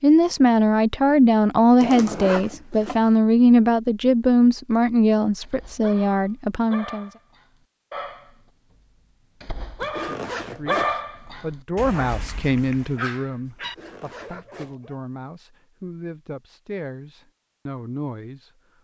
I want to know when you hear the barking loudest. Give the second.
11 s.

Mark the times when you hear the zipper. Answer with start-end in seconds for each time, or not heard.
1.8-3.0, 9.8-10.9, 13.6-14.8.